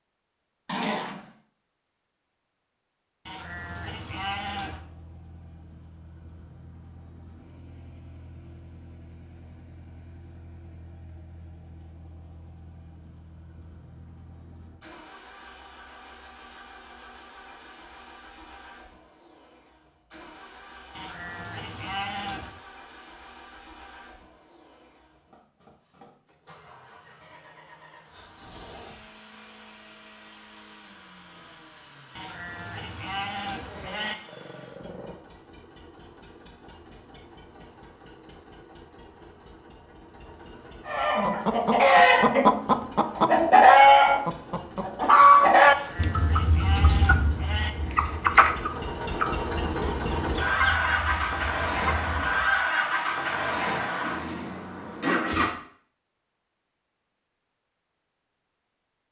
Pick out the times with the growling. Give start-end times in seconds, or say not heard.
0.7-1.3, 33.1-35.1.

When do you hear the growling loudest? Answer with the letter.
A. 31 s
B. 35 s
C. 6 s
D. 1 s
D.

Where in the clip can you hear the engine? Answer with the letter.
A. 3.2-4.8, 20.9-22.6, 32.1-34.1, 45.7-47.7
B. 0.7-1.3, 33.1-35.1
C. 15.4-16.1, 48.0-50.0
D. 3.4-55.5
D.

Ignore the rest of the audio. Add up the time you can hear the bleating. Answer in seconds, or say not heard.
7 s.